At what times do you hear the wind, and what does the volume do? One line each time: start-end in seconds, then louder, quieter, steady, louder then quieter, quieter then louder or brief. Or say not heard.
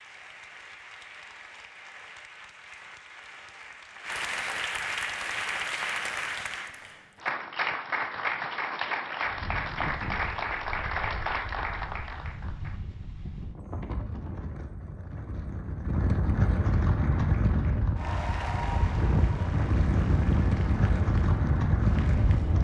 9.2-22.5 louder.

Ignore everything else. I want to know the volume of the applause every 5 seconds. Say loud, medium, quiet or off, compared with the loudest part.
medium, loud, loud, medium, quiet.